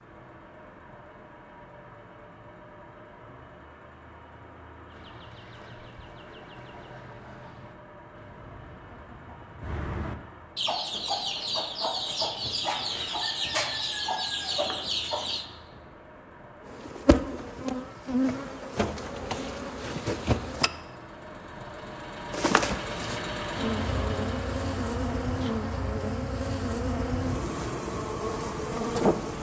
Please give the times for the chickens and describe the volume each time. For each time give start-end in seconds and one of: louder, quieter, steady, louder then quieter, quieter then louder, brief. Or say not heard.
4.8-15.4 louder.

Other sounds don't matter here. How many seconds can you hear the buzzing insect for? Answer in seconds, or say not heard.
17 s.